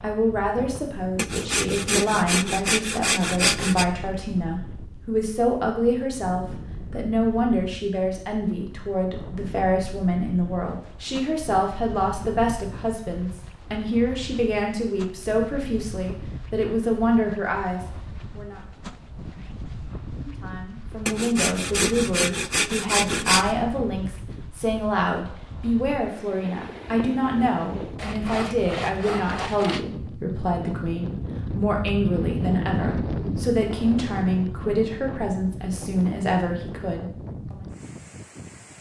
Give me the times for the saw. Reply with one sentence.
You can hear the saw from 1.1 to 3.9 s, from 21.1 to 23.5 s and from 27.9 to 29.9 s.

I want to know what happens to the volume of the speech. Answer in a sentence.
The loudness of the speech stays about the same.